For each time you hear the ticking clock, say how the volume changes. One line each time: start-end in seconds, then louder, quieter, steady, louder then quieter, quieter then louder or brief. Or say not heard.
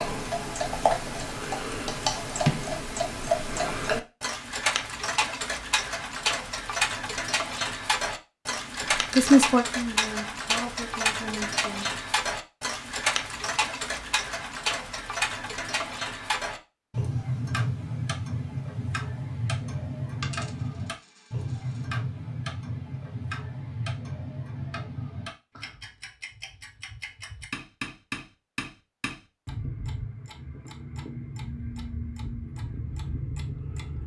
0.0-34.0 quieter.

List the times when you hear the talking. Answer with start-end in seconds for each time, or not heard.
8.9-11.9.